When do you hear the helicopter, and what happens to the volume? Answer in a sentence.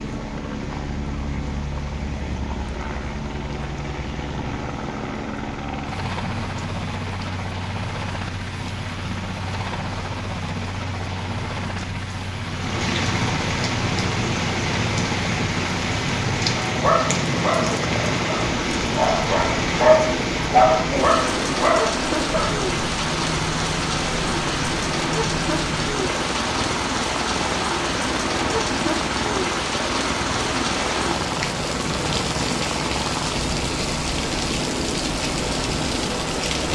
You can hear the helicopter from 0.0 to 36.7 s, at a steady volume.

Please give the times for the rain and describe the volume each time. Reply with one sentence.
The rain can be heard from 0.0 to 36.7 s, getting louder.